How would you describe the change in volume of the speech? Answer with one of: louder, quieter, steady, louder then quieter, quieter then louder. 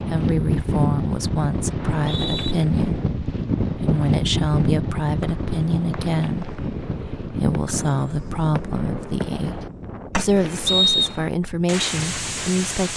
steady.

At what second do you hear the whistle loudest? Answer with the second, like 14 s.
11 s.